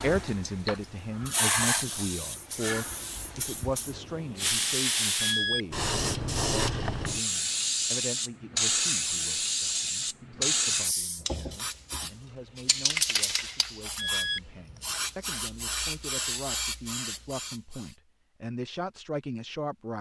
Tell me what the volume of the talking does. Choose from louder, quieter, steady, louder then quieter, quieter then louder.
quieter then louder.